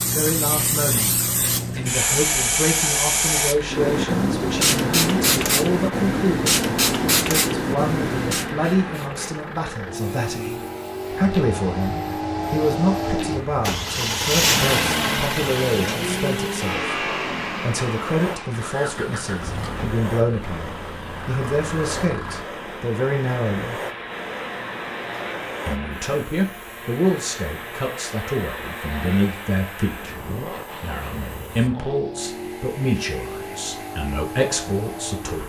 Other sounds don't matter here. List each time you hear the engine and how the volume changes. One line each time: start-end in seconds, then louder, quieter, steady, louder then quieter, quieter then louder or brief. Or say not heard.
3.5-35.4 louder then quieter.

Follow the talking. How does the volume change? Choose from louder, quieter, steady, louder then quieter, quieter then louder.
steady.